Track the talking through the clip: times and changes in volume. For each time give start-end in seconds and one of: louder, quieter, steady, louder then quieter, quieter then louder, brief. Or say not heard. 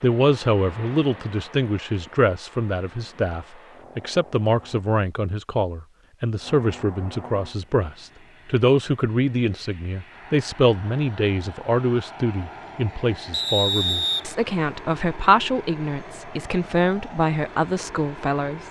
0.0-18.6 steady.